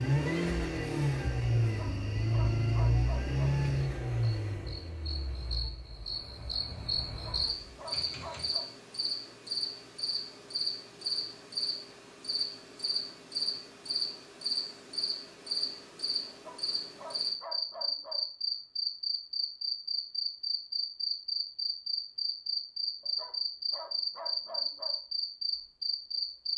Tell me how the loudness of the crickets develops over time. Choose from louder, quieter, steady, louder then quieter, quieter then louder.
louder.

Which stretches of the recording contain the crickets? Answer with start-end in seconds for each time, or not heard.
0.0-26.5.